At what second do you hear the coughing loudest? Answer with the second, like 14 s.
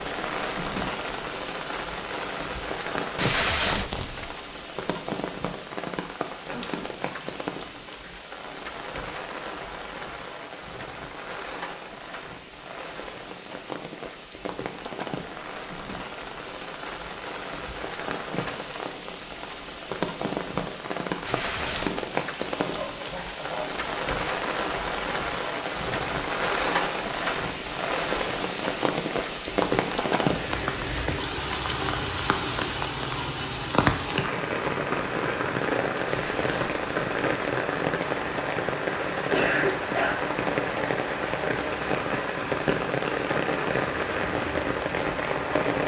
40 s.